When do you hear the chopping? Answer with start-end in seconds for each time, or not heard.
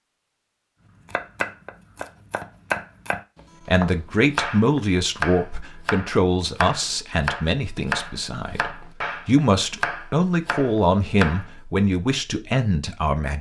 1.1-11.4.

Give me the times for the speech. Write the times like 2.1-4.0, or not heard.
3.6-13.3.